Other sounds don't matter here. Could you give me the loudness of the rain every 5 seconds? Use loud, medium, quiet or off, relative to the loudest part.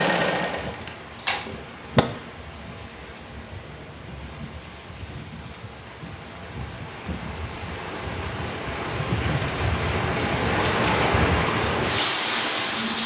quiet, medium, loud.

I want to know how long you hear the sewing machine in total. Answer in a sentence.
The sewing machine can be heard for 2 seconds in total.